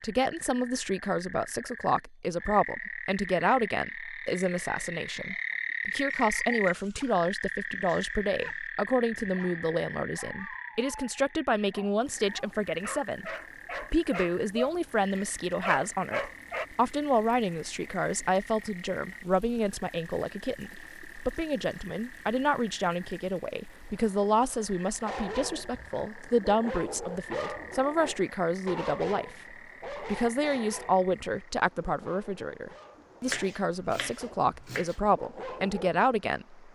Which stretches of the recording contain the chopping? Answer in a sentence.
You can hear the chopping from 33.2 to 35.0 s.